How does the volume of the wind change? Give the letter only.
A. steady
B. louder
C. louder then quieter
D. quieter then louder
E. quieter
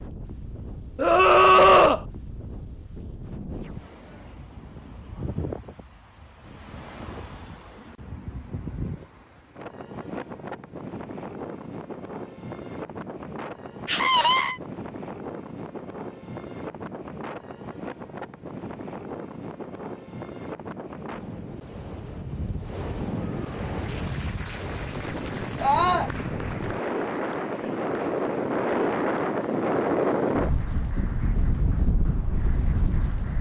B.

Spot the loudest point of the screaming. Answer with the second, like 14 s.
2 s.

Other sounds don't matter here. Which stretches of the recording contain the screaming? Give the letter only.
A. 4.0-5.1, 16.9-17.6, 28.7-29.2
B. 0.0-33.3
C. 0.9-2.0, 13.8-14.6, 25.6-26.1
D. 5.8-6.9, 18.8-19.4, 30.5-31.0
C.